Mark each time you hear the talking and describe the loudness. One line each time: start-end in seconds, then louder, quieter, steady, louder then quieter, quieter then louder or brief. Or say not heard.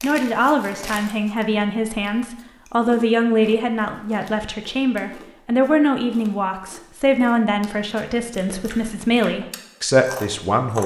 0.0-10.8 steady.